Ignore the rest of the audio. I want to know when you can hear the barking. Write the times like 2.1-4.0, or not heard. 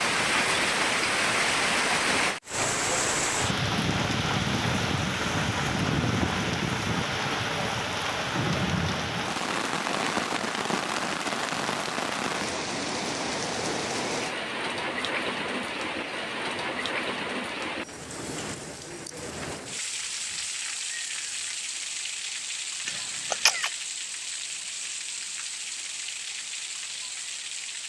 not heard.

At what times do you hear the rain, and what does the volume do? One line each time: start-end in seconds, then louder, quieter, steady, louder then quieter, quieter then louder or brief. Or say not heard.
0.0-27.8 quieter.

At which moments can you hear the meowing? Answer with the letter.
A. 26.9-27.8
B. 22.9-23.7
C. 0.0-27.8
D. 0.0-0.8
B.